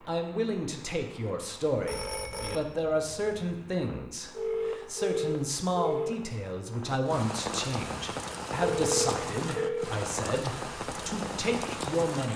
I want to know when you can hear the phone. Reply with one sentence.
You can hear the phone from 1.8 to 2.6 s, from 4.3 to 6.2 s and from 8.6 to 9.8 s.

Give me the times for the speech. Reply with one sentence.
You can hear the speech from 0.1 to 12.3 s.